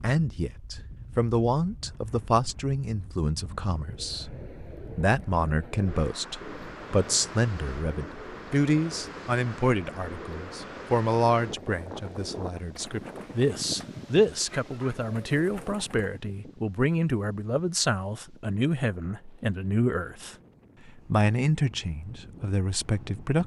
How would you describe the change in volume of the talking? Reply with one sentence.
The volume of the talking stays about the same.